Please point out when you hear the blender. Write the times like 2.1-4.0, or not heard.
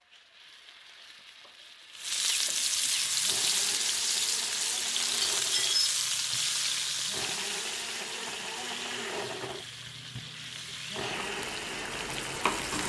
3.0-12.6.